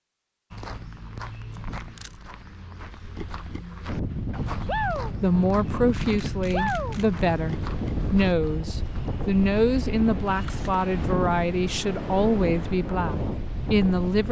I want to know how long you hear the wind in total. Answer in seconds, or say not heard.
10 s.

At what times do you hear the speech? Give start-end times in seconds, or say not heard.
5.0-14.2.